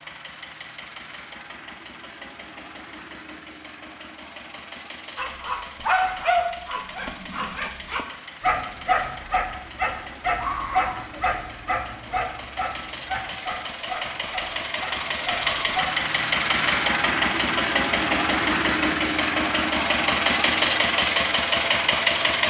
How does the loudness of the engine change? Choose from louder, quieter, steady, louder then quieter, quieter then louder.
louder.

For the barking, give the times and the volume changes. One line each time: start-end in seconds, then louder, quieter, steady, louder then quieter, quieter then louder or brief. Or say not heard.
5.2-15.9 quieter.